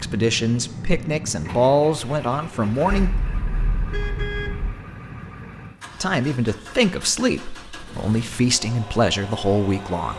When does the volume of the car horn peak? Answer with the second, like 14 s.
4 s.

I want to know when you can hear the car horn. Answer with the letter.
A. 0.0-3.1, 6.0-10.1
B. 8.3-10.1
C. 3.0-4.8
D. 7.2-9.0
C.